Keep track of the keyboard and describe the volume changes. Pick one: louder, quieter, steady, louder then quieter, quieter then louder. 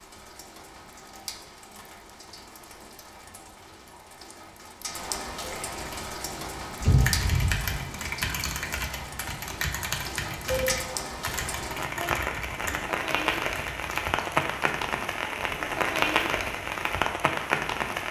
quieter.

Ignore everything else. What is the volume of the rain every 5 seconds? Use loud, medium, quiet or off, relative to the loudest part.
quiet, medium, loud, loud.